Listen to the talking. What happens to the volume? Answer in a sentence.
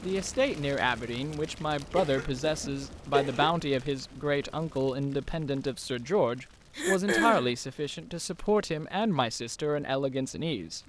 The loudness of the talking stays about the same.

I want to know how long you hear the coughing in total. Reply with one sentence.
The coughing can be heard for 2 seconds in total.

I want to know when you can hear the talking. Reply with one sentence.
The talking can be heard from 0.0 to 10.8 s.